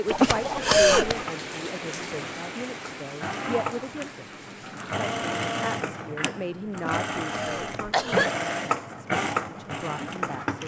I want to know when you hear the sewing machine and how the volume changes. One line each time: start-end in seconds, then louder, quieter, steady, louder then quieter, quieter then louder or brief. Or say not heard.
0.1-10.6 louder.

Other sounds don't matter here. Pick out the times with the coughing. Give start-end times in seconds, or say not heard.
0.1-1.2, 6.7-8.3.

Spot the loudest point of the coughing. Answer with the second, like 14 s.
1 s.